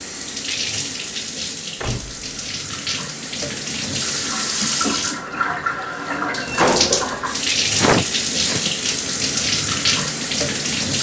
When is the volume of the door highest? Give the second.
7 s.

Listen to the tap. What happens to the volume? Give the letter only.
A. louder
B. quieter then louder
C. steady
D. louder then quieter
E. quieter
A.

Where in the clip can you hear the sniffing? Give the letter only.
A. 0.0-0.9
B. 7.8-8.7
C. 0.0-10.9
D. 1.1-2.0
B.